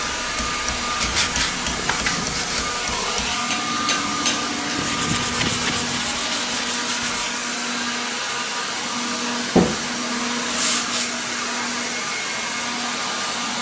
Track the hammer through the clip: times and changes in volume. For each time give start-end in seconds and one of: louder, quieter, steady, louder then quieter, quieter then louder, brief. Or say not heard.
0.0-5.0 louder.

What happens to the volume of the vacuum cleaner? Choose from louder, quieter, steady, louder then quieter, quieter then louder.
steady.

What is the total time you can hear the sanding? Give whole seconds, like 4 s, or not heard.
6 s.